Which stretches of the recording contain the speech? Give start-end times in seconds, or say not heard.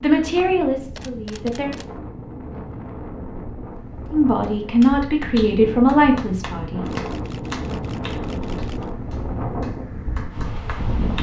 0.0-1.7, 4.1-7.0.